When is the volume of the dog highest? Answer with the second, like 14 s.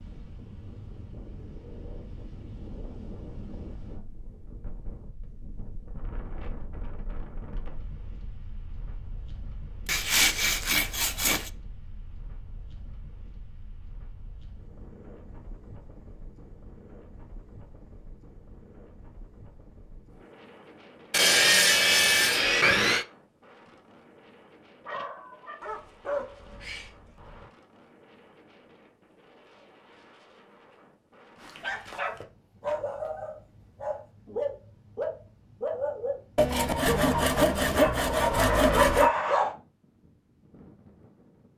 39 s.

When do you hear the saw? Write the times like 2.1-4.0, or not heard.
9.8-11.5, 21.1-23.1, 36.4-39.1.